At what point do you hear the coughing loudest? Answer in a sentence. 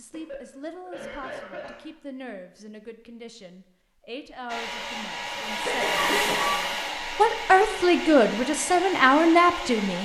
The volume of the coughing peaks at 6 seconds.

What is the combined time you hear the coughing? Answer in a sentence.
The coughing can be heard for 3 seconds in total.